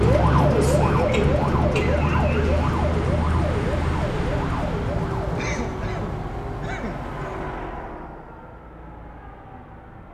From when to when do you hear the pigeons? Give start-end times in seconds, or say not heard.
not heard.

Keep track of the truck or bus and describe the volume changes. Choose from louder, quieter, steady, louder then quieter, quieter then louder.
quieter.